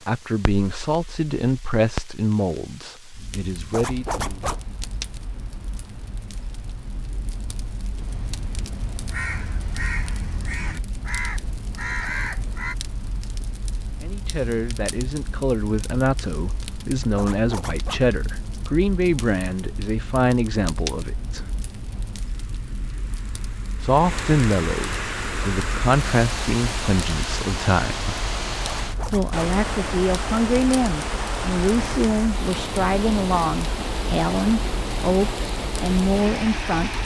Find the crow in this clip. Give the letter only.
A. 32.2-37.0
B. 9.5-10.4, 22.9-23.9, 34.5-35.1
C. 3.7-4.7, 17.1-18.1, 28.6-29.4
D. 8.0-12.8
D.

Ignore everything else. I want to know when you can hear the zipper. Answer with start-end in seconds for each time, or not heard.
3.7-4.7, 17.1-18.1, 28.6-29.4.